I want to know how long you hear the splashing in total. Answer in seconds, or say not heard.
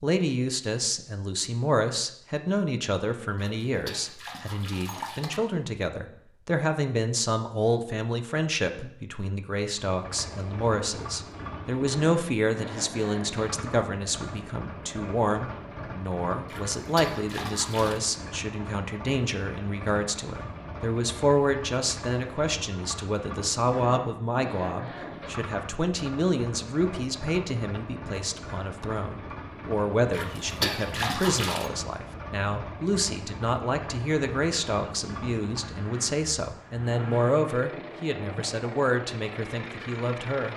5 s.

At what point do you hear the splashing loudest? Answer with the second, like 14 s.
31 s.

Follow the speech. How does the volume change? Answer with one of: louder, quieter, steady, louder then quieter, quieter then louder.
steady.